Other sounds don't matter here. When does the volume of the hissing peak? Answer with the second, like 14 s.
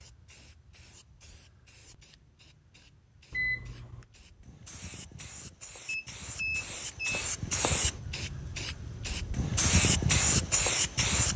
10 s.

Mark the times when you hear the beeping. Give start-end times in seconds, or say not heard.
3.3-4.0, 5.8-7.2.